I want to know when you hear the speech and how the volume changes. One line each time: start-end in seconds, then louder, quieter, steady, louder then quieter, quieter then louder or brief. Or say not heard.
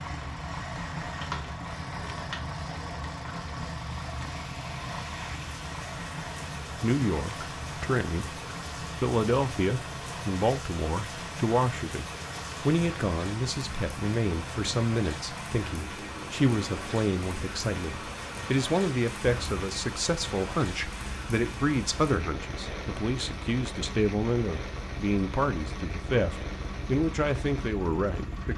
6.8-8.4 brief
9.0-28.5 steady.